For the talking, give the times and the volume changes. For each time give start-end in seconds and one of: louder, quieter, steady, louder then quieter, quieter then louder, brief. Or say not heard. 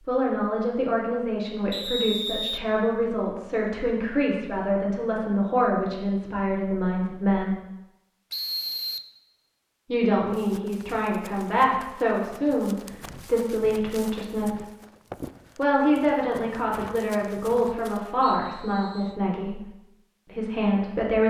0.1-7.6 steady
9.8-14.7 steady
15.6-19.7 steady
20.3-21.2 brief.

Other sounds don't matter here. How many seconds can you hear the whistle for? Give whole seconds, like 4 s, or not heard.
3 s.